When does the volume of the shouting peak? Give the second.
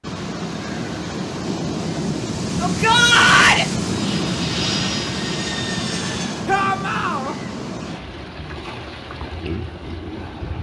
3 s.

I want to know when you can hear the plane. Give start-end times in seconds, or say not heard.
3.8-6.5.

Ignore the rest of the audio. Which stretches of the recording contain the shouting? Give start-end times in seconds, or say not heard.
2.6-3.6, 6.5-7.3.